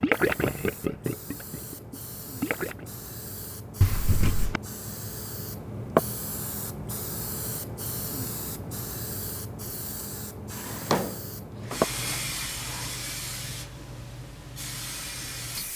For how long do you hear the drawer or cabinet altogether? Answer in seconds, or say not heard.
3 s.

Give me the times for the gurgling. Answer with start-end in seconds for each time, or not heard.
0.0-2.9.